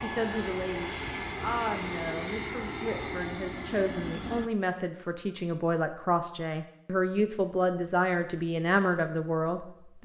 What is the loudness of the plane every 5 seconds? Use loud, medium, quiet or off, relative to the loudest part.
loud, off.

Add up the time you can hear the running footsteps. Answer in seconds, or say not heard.
not heard.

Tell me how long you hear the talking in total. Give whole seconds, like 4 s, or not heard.
10 s.